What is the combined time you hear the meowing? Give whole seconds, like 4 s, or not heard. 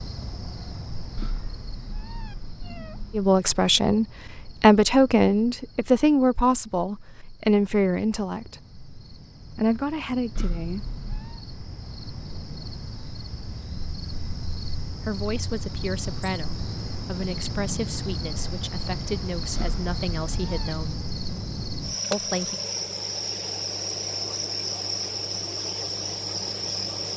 4 s.